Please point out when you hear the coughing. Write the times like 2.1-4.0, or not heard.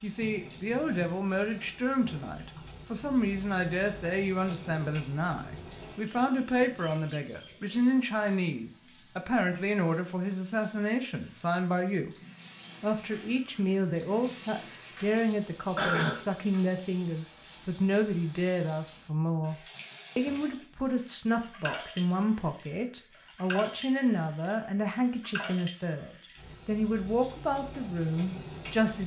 15.8-16.2.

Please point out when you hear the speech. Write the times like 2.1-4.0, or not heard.
0.0-12.2, 12.8-29.0.